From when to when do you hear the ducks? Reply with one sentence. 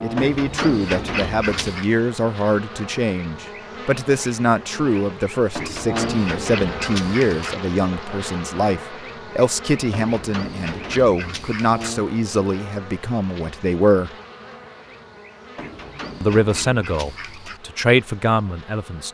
You can hear the ducks from 0.1 to 1.9 s, from 5.5 to 7.5 s, from 9.9 to 11.9 s and from 15.6 to 17.6 s.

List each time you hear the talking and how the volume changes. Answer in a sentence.
You can hear the talking from 0.0 to 14.1 s, at a steady volume; and briefly from 16.2 to 19.1 s.